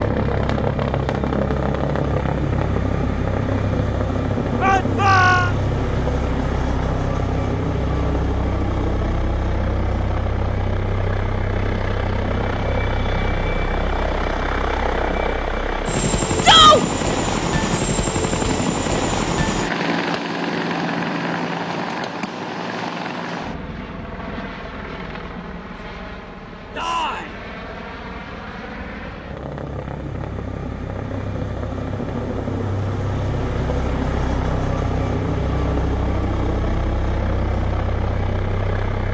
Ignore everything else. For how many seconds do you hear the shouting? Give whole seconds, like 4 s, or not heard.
2 s.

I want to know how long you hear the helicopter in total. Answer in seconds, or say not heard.
39 s.